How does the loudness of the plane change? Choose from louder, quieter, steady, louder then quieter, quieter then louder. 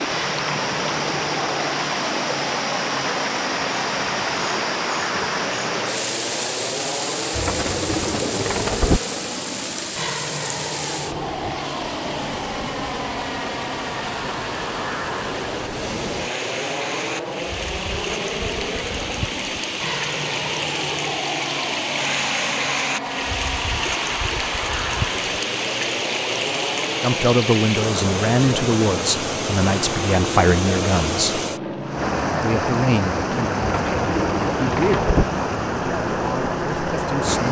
steady.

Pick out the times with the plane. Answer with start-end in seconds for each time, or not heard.
0.0-37.4.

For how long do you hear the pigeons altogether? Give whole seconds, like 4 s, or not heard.
3 s.